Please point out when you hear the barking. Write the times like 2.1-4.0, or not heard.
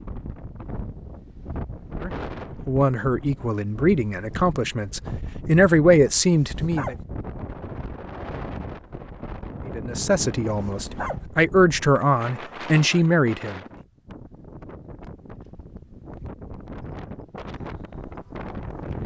6.3-7.0, 10.6-11.2.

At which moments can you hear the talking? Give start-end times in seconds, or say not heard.
2.0-7.0, 9.7-13.6.